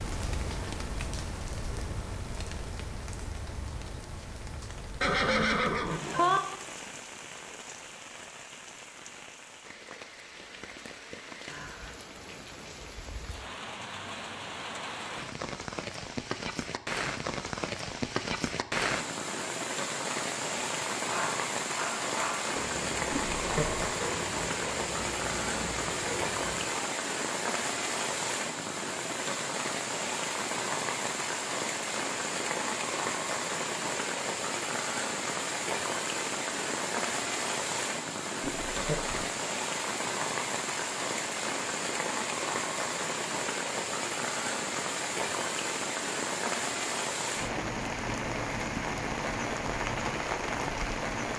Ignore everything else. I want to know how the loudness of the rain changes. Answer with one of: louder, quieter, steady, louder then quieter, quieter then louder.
louder.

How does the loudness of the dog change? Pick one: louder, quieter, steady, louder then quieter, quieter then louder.
steady.